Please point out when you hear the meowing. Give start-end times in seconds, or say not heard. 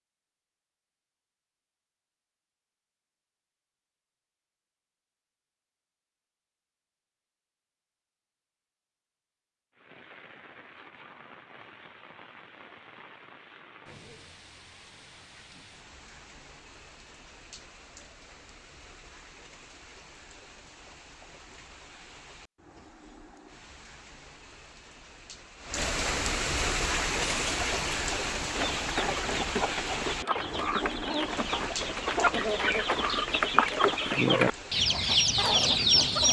not heard.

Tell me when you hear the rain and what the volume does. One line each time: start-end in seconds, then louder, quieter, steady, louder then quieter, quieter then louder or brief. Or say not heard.
9.7-36.0 louder then quieter.